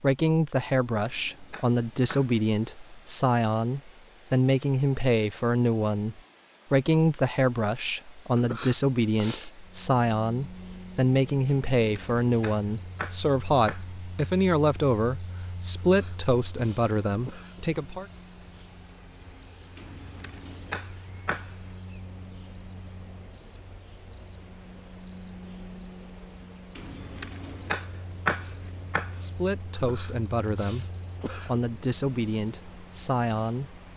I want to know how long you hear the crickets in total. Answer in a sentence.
You can hear the crickets for 24 seconds altogether.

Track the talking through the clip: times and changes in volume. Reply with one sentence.
The talking can be heard from 0.0 to 18.1 s, at a steady volume; and from 29.1 to 33.8 s, at a steady volume.